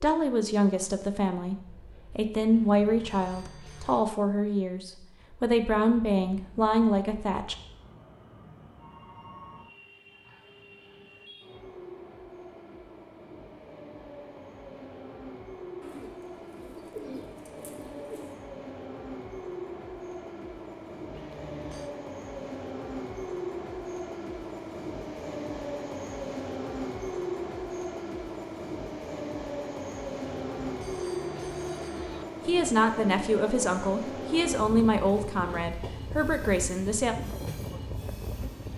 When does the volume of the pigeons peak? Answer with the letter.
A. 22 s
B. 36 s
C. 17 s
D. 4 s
C.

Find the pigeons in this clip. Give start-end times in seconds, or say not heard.
15.8-18.4.